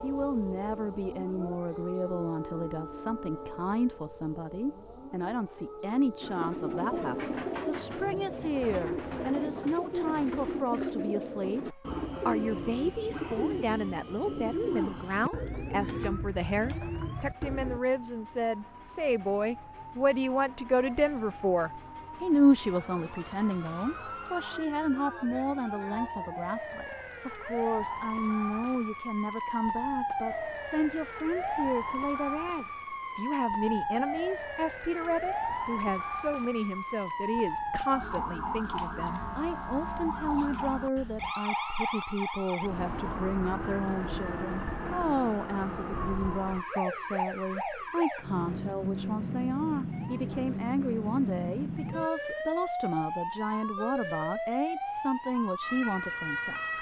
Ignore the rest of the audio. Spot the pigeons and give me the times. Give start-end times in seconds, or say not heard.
6.2-17.8.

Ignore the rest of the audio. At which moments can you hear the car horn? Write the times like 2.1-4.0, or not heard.
not heard.